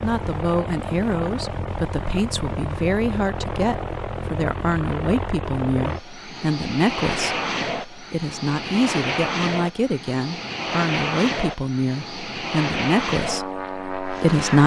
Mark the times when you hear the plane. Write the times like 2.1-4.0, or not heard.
0.0-14.6.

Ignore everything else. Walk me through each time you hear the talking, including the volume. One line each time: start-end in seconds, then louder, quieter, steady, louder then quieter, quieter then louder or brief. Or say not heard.
0.0-14.6 steady.